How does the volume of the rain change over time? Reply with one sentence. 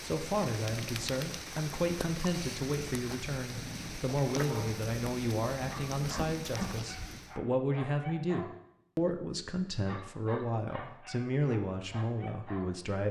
The volume of the rain stays about the same.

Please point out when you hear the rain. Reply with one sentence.
The rain can be heard from 0.0 to 7.3 s.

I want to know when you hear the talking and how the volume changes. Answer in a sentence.
The talking can be heard from 0.0 to 13.0 s, at a steady volume.